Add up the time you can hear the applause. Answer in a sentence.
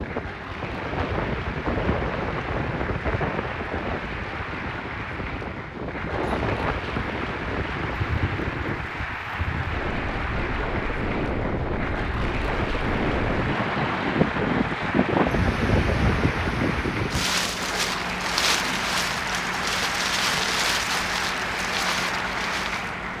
You can hear the applause for 23 seconds altogether.